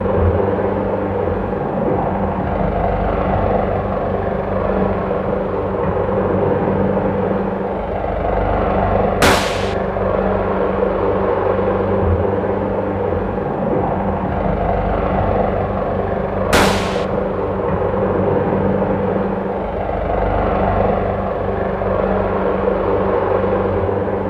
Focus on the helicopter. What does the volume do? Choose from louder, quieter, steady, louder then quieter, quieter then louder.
steady.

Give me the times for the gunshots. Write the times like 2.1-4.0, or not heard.
9.2-9.8, 16.5-17.1.